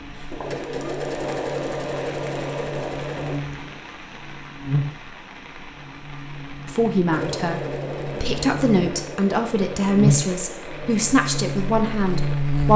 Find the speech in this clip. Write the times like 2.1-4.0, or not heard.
6.7-12.7.